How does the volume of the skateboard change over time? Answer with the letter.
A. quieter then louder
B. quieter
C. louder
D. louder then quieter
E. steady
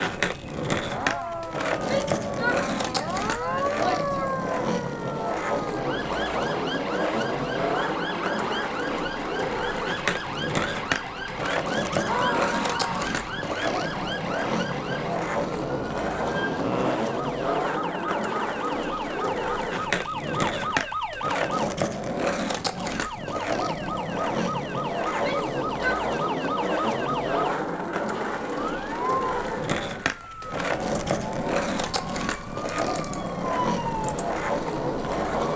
E.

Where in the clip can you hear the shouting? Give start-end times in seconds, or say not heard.
1.9-4.2, 12.0-13.2, 25.1-26.1.